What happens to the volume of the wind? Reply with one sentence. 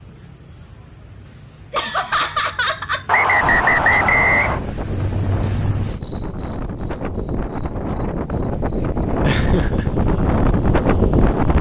The volume of the wind goes up.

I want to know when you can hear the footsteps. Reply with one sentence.
The footsteps can't be heard in this clip.